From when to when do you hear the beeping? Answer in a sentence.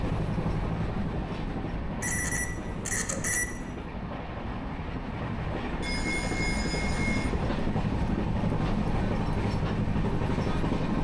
The beeping can be heard from 2.0 to 3.5 s and from 5.8 to 7.3 s.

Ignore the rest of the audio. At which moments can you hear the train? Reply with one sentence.
You can hear the train from 0.0 to 10.9 s.